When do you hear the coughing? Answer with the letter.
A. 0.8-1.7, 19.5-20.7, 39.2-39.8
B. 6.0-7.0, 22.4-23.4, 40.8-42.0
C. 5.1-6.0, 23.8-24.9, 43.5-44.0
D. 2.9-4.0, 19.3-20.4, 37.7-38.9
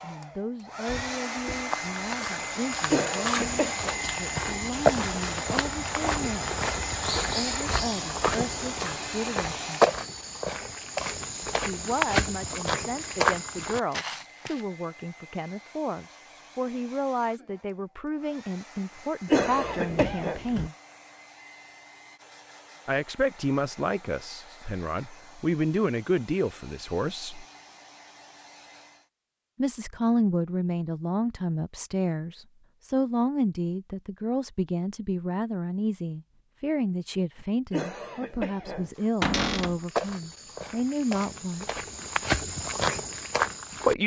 D.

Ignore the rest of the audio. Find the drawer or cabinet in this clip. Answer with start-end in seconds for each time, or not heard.
0.8-1.7, 19.5-20.7, 39.2-39.8.